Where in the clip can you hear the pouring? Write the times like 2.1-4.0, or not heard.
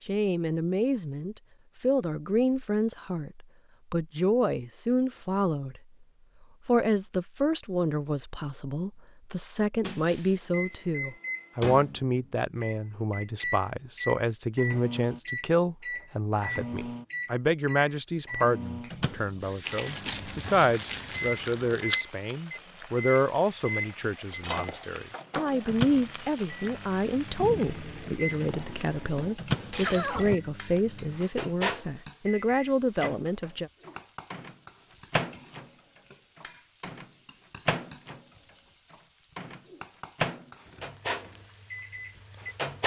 not heard.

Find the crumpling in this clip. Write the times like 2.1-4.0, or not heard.
19.6-22.1.